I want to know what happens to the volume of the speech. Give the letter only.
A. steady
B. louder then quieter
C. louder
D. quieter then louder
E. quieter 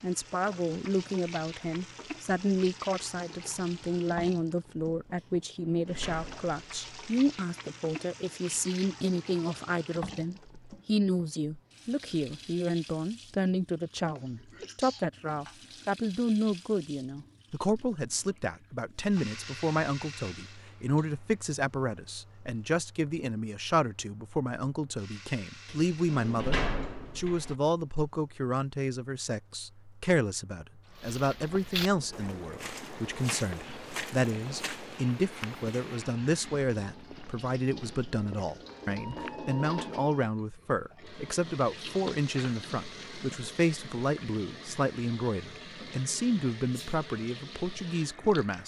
A.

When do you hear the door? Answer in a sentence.
The door can be heard from 5.2 to 7.2 s and from 25.6 to 27.6 s.